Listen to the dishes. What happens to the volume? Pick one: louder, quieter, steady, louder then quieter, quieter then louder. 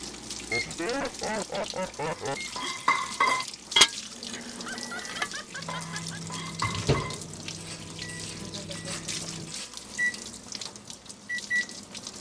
quieter.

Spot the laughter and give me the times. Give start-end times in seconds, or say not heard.
0.5-2.4, 4.3-6.2, 8.4-9.3.